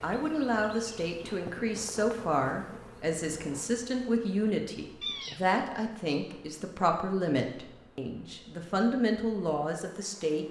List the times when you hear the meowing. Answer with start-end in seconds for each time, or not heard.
5.0-5.5.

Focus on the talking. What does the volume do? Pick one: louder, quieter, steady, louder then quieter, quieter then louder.
steady.